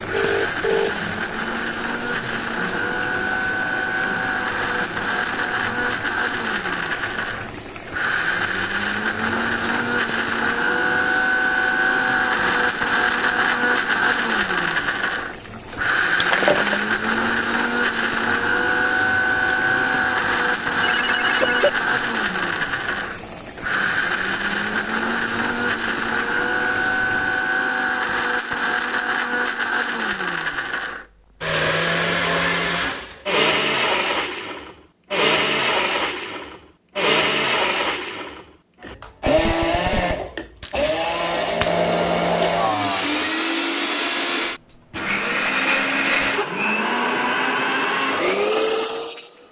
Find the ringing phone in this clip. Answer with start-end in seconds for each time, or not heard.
0.1-0.9, 20.9-21.7, 39.2-40.1.